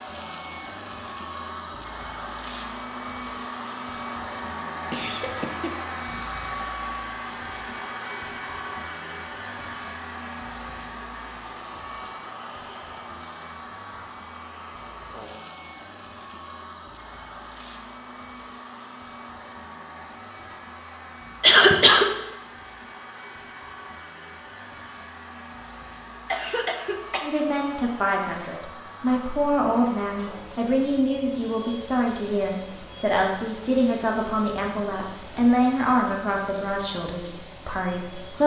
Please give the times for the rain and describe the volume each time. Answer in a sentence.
The rain can't be heard in this clip.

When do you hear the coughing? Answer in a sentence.
The coughing can be heard from 4.9 to 6.7 s, from 21.4 to 22.1 s and from 26.3 to 27.2 s.